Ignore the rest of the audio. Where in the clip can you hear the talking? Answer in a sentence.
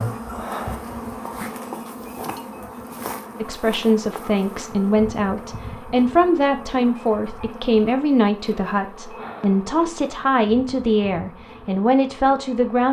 You can hear the talking from 3.4 to 12.8 s.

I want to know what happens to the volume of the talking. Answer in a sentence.
The loudness of the talking stays about the same.